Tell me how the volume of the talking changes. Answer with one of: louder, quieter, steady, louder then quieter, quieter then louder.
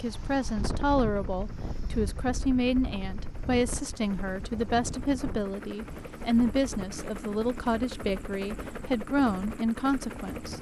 steady.